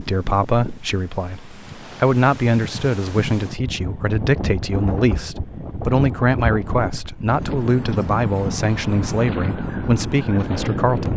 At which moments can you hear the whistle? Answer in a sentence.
You can't hear the whistle here.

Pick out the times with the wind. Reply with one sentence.
The wind can be heard from 0.0 to 11.1 s.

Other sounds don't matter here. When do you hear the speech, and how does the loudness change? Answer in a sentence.
You can hear the speech from 0.0 to 11.1 s, at a steady volume.